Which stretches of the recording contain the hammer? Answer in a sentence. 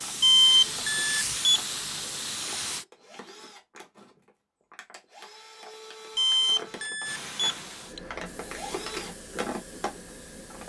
You can't hear the hammer here.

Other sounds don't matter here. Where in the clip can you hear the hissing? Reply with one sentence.
The hissing can be heard from 0.0 to 2.9 s and from 7.0 to 10.6 s.